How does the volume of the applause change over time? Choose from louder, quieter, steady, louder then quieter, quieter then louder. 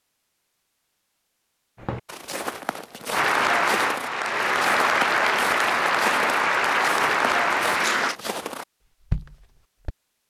steady.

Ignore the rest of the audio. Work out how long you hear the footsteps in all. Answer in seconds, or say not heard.
8 s.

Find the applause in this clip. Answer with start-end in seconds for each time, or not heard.
3.1-8.2.